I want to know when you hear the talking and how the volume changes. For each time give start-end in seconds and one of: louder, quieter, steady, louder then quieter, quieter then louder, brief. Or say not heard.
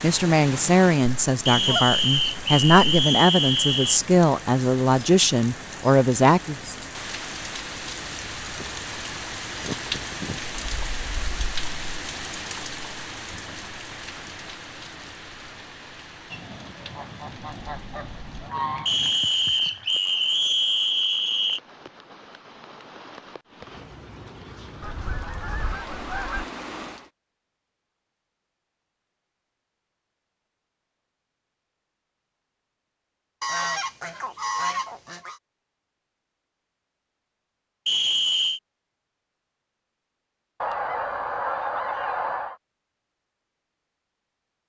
0.0-6.8 steady.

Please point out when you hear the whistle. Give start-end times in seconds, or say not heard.
1.4-4.0, 18.9-21.6, 37.9-38.6.